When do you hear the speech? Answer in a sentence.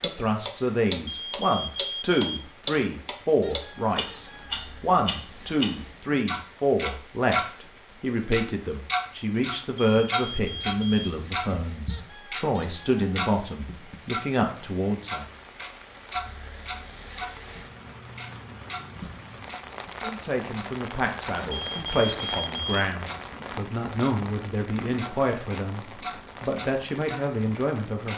You can hear the speech from 0.0 to 15.2 s and from 20.0 to 28.1 s.